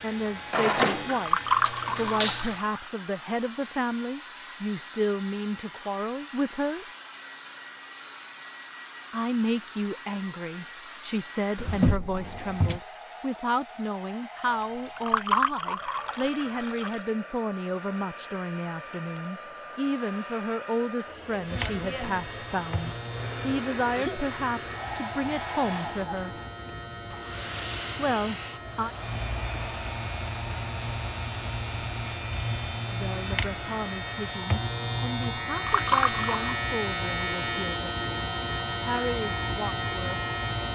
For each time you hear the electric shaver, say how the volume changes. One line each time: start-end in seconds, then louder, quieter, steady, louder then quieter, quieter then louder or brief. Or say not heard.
0.0-2.6 brief
21.4-40.6 louder.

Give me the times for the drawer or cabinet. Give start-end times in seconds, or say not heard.
11.6-12.8.